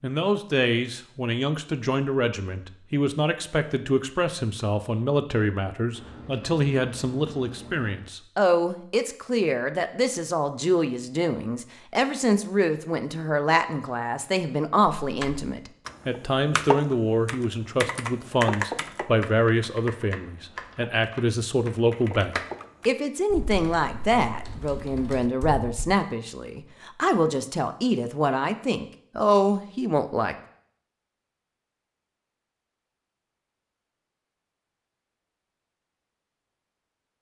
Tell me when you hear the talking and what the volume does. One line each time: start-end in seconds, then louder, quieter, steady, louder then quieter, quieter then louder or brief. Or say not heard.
0.0-30.4 steady.